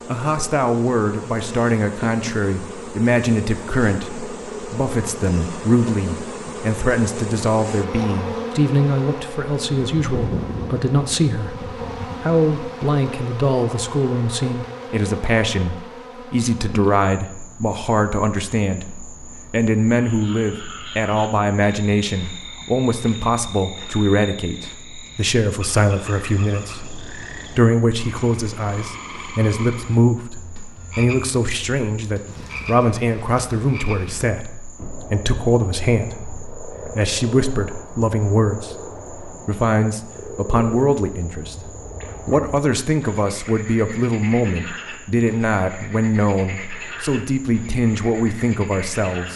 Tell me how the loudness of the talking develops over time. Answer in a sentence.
The loudness of the talking stays about the same.